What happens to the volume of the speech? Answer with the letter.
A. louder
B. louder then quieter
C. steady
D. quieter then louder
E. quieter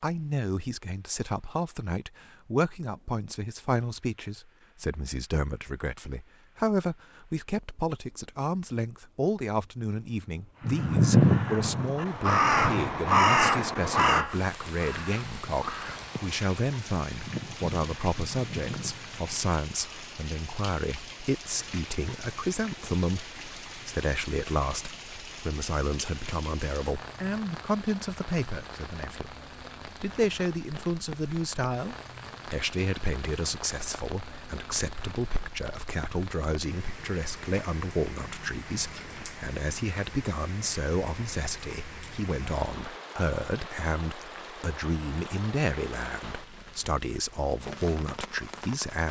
C.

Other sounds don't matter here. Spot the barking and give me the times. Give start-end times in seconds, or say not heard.
not heard.